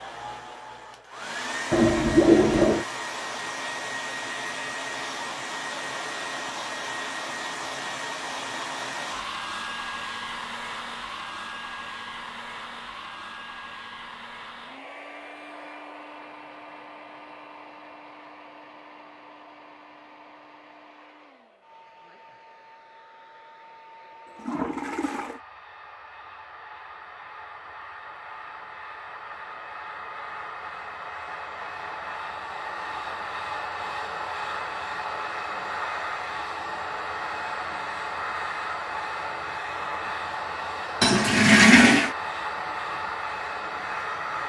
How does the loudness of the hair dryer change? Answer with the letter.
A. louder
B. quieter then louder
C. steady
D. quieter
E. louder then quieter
B.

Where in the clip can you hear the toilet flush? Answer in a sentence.
You can hear the toilet flush from 1.7 to 2.9 s, from 24.3 to 25.4 s and from 41.0 to 42.1 s.